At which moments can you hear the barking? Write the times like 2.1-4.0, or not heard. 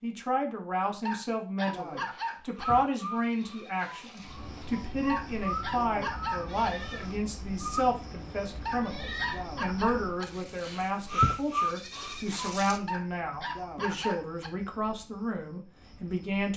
1.1-2.6, 5.0-6.7, 8.7-10.2, 12.8-14.5.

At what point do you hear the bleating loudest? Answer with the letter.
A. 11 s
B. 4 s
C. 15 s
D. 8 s
A.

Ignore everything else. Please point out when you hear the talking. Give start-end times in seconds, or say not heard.
0.0-16.5.